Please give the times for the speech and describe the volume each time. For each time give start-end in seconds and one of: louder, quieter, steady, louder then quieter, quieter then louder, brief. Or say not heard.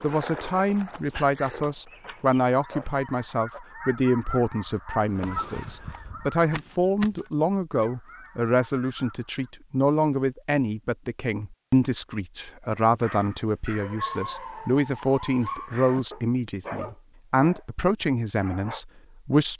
0.0-19.5 steady.